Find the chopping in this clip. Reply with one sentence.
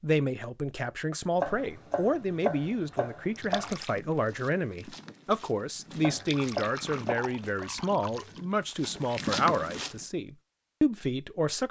The chopping can be heard from 1.4 to 3.8 s and from 6.0 to 7.7 s.